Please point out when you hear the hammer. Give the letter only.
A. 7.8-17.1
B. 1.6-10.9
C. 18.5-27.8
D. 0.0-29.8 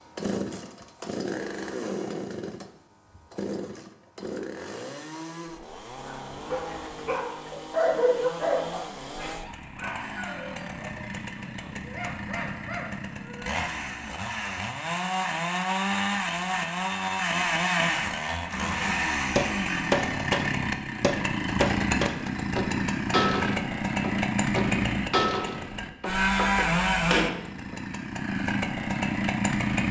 C.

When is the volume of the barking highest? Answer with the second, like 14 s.
8 s.